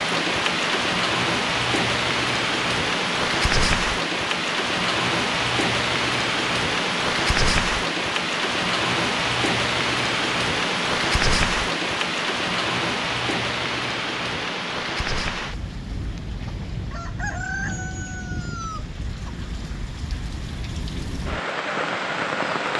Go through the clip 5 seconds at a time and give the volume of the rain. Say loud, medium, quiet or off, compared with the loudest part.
loud, loud, loud, medium, medium.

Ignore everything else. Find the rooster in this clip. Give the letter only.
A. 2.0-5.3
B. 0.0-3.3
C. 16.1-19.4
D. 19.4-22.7
C.